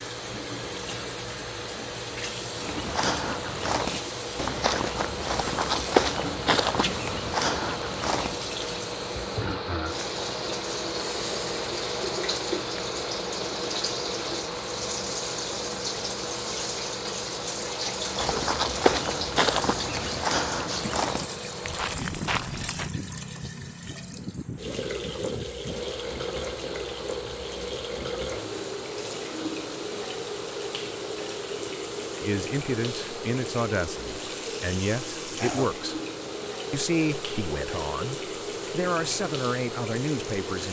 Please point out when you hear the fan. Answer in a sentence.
You can hear the fan from 0.0 to 40.6 s.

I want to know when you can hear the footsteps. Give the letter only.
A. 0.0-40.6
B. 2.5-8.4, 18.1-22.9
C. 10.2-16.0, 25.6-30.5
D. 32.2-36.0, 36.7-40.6
B.